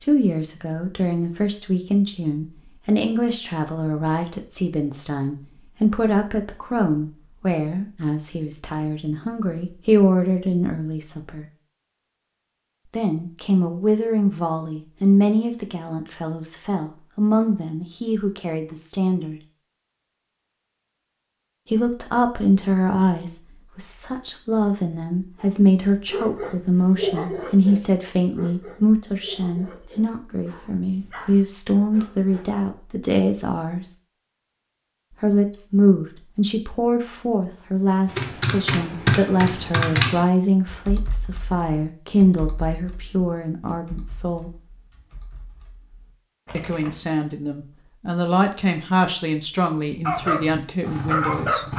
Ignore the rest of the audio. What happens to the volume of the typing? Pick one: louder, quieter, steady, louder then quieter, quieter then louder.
quieter then louder.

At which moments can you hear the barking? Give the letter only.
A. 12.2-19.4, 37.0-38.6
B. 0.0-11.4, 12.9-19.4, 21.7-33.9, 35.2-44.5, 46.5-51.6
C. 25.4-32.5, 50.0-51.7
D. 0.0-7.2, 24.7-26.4
C.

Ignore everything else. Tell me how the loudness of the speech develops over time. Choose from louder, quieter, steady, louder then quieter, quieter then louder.
steady.